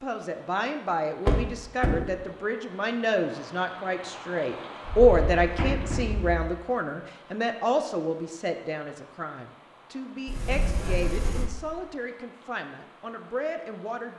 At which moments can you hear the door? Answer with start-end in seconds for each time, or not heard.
1.2-2.0, 4.8-6.5, 10.2-11.5.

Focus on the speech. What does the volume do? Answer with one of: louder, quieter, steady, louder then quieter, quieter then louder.
louder then quieter.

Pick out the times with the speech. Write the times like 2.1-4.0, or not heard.
0.0-14.1.